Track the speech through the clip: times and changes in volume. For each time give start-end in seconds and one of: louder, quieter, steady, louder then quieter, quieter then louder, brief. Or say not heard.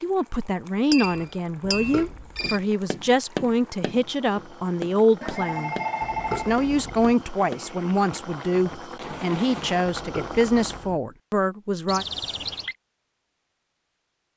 0.0-12.1 steady.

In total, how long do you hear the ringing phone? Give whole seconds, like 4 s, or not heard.
4 s.